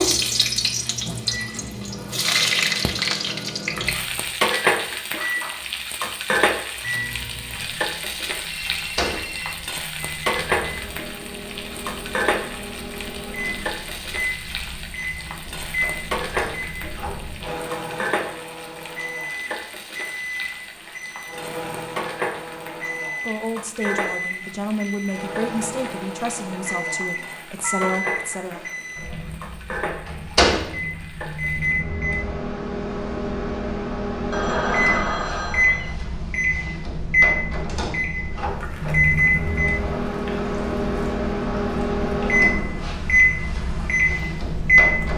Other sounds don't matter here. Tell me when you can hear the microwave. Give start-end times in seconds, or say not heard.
0.0-45.1.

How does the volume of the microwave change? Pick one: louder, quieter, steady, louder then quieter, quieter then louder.
louder.